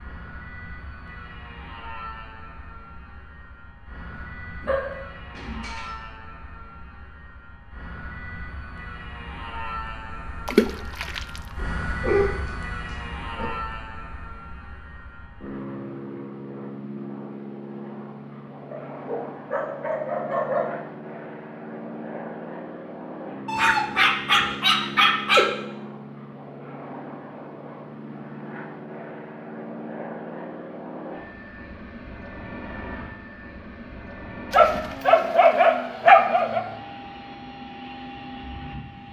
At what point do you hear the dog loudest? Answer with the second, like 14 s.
36 s.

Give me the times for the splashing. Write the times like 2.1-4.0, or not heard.
10.4-11.6.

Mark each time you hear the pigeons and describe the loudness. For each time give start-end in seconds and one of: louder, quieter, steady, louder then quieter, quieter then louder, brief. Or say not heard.
not heard.